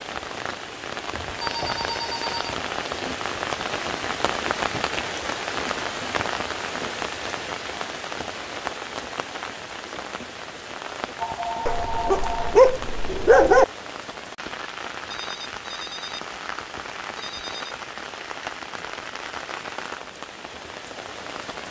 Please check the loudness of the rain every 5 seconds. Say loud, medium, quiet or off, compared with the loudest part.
loud, loud, medium, medium, medium.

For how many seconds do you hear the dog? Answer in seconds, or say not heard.
2 s.